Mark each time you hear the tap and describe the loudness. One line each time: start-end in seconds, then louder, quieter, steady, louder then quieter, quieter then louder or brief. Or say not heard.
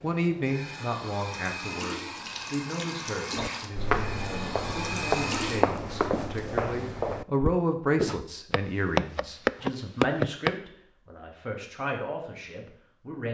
0.0-5.7 louder.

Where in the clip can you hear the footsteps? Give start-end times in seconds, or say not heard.
3.4-10.6.